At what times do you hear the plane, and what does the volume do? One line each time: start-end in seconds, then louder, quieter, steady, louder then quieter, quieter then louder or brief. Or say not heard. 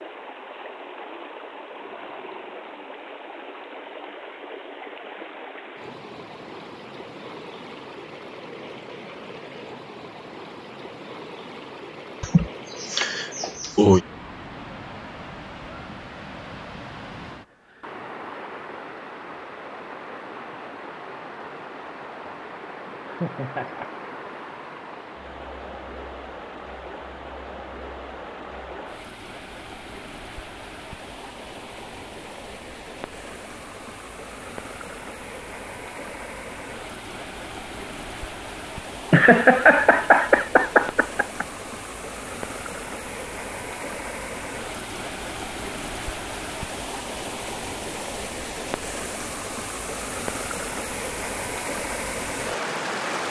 not heard.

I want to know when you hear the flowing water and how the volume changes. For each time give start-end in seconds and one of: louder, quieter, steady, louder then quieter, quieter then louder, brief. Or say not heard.
0.0-53.2 louder.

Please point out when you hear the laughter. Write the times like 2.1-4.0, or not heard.
12.2-14.0, 23.1-23.9, 39.1-41.5.